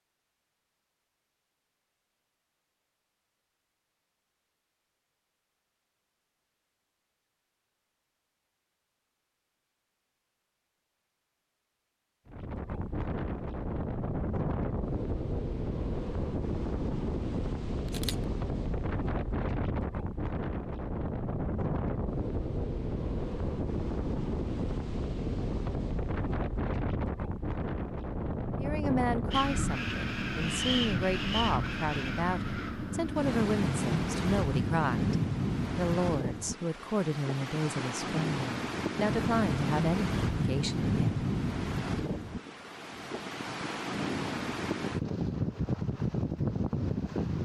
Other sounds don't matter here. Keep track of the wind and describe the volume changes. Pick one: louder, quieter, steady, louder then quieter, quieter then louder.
steady.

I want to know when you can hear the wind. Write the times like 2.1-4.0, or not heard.
12.2-47.3.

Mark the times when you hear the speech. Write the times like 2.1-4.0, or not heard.
28.6-35.1, 35.8-41.2.